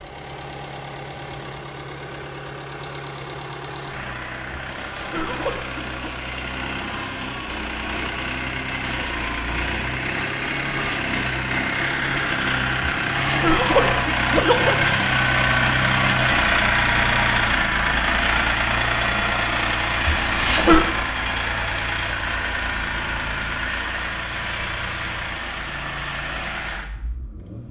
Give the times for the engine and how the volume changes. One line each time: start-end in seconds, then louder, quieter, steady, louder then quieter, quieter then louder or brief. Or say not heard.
0.0-27.6 louder then quieter.